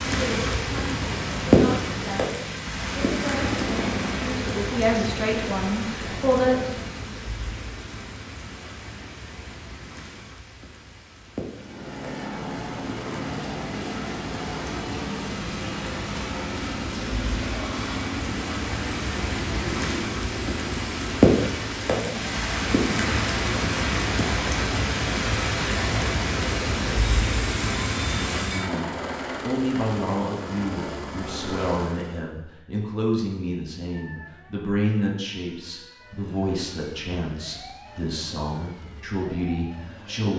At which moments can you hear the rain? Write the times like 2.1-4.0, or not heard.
0.0-28.6.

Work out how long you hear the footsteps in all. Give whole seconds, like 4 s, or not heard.
not heard.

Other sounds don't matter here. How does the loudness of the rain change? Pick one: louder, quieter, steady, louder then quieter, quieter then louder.
quieter then louder.